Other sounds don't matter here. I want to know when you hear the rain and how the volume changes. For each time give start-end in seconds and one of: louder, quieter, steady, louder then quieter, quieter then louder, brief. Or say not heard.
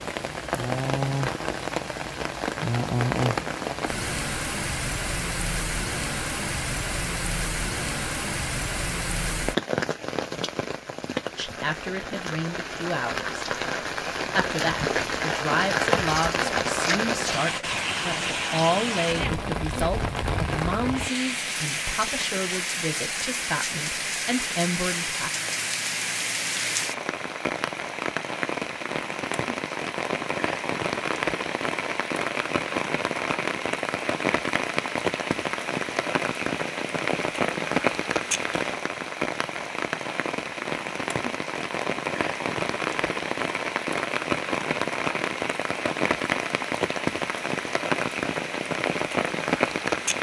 0.0-50.1 steady.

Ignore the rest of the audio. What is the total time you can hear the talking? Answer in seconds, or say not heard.
13 s.